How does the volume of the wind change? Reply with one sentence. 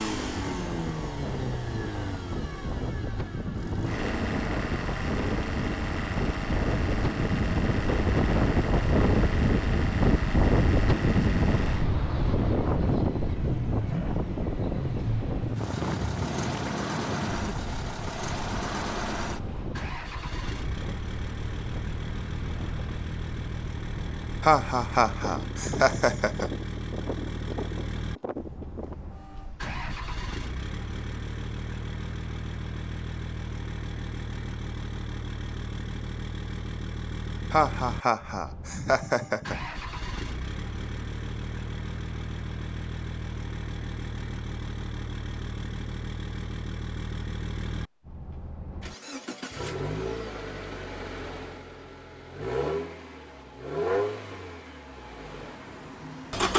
The volume of the wind goes up, then down.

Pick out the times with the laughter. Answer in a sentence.
You can hear the laughter from 24.4 to 26.5 s and from 37.5 to 39.5 s.